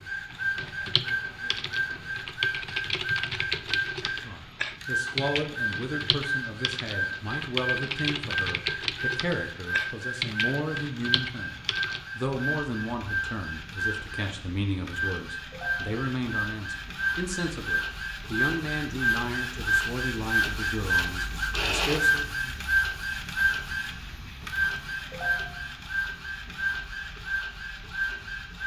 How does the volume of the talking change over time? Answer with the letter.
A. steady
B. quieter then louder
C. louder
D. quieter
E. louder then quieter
A.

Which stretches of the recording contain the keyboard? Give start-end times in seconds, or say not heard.
0.3-12.1.